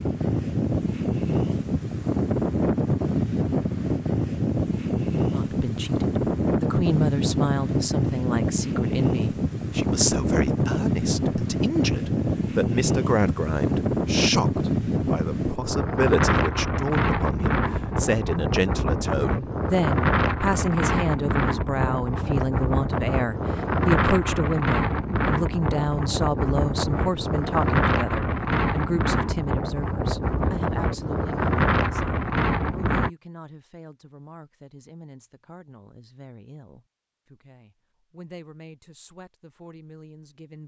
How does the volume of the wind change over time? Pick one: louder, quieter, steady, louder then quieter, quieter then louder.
steady.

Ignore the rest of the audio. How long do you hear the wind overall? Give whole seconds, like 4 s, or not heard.
33 s.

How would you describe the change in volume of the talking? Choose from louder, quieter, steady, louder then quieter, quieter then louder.
quieter.